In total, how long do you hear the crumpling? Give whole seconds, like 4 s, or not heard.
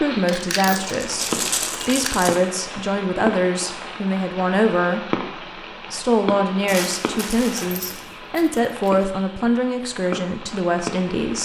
3 s.